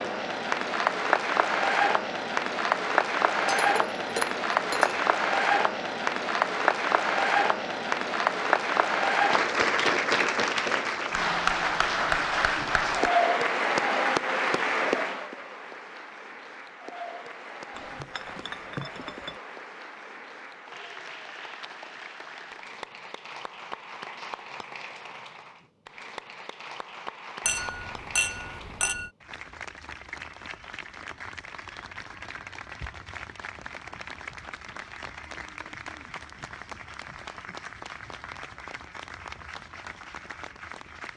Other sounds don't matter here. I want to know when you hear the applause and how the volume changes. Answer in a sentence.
The applause can be heard from 0.0 to 41.1 s, getting quieter.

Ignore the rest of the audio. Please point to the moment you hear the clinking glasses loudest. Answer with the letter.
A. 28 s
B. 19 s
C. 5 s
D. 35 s
A.